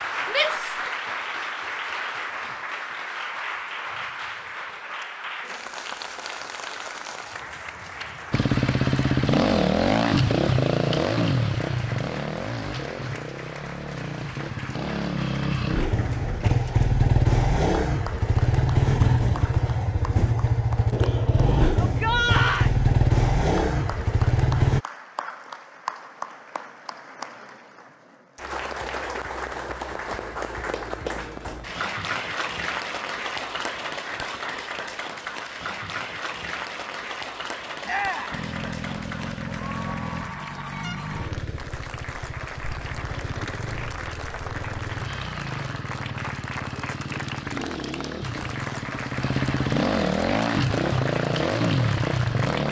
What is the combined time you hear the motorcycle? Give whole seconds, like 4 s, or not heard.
31 s.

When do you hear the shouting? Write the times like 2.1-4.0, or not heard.
0.3-0.8, 21.8-22.7, 37.9-38.4.